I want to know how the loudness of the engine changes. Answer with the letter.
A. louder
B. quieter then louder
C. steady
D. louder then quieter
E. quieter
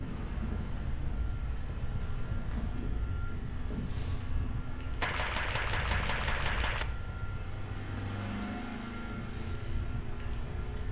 A.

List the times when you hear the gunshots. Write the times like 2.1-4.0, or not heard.
5.0-6.8.